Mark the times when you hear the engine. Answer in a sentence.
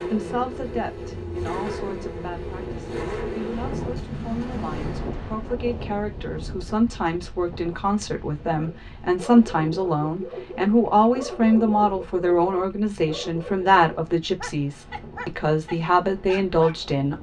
The engine can be heard from 0.0 to 5.2 s.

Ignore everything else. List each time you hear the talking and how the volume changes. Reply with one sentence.
You can hear the talking from 0.1 to 17.1 s, getting louder.